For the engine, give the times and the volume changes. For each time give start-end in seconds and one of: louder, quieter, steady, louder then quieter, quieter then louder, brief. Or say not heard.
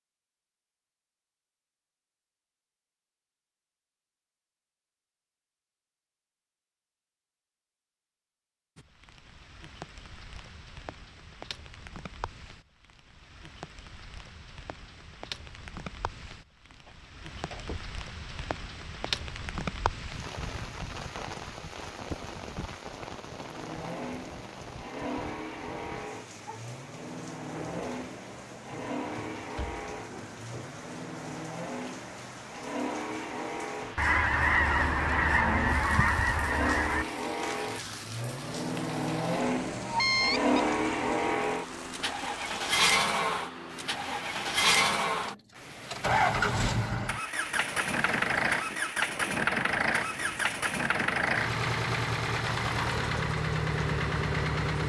23.4-54.8 louder.